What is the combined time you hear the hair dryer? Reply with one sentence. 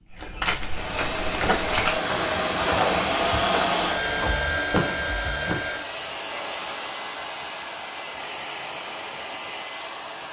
The hair dryer can be heard for 10 seconds in total.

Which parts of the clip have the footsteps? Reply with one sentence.
The footsteps can be heard from 0.1 to 5.7 s.